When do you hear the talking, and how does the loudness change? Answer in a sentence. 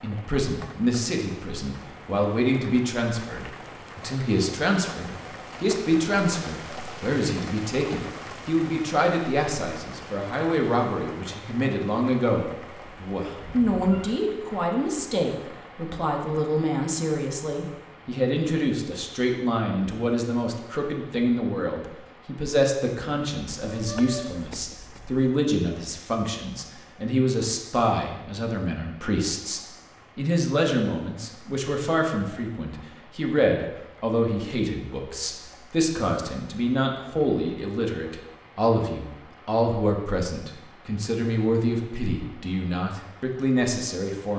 The talking can be heard from 0.0 to 44.3 s, at a steady volume.